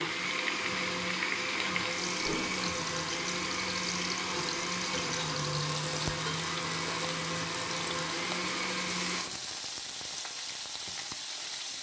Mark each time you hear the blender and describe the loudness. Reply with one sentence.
You can hear the blender from 0.0 to 9.2 s, at a steady volume.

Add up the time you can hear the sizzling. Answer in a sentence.
You can hear the sizzling for 12 seconds altogether.